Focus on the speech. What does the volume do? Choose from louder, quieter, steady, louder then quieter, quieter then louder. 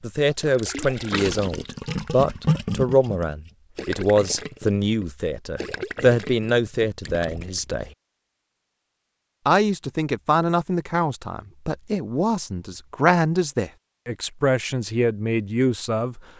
steady.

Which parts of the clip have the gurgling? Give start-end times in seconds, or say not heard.
0.2-7.8.